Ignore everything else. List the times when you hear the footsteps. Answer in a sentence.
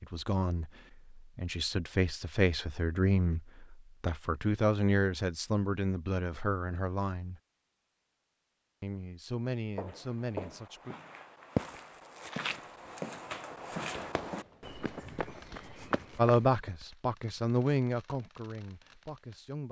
The footsteps can be heard from 9.8 to 16.7 s.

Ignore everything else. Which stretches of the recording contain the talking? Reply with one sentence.
You can hear the talking from 0.0 to 7.4 s, from 8.8 to 10.9 s and from 16.1 to 19.6 s.